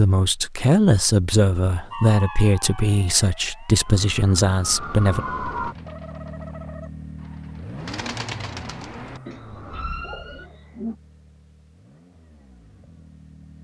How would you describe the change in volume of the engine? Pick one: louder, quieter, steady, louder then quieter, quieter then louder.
quieter.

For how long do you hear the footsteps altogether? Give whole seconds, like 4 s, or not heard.
not heard.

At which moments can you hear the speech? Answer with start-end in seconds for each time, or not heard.
0.0-5.2.